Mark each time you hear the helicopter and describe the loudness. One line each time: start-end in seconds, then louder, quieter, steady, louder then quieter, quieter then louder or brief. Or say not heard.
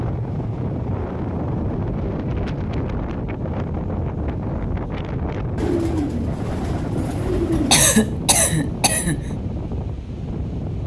not heard.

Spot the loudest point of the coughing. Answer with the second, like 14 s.
8 s.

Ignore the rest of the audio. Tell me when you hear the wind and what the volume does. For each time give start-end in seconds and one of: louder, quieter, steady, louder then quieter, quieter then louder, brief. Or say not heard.
0.0-10.8 steady.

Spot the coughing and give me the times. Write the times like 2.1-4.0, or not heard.
7.0-9.2.